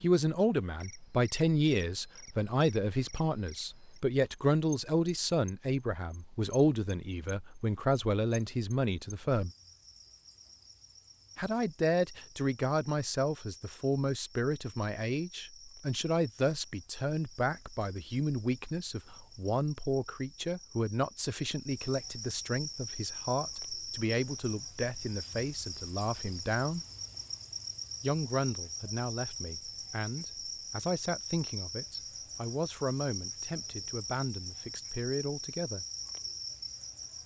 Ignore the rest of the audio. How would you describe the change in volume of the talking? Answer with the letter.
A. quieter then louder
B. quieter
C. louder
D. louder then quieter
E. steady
B.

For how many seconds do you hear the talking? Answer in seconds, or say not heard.
33 s.